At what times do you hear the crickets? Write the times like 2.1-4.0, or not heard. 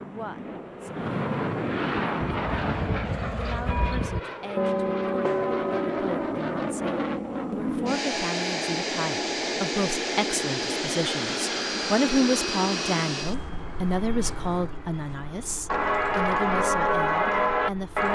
not heard.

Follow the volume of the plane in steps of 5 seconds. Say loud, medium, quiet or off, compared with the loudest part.
loud, loud, loud, quiet.